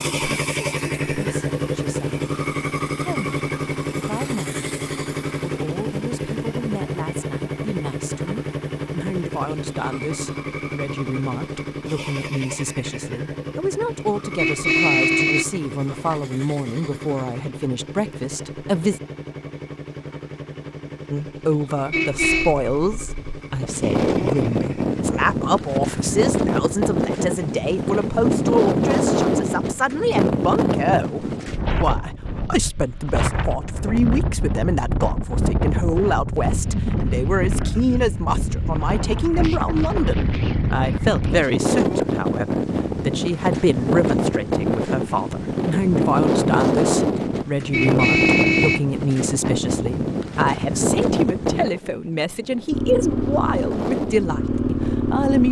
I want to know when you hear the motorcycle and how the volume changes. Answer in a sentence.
You can hear the motorcycle from 0.0 to 25.1 s, getting quieter; and briefly from 52.7 to 55.4 s.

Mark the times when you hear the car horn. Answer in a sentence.
The car horn can be heard from 14.3 to 16.2 s, from 21.9 to 22.6 s and from 47.7 to 49.5 s.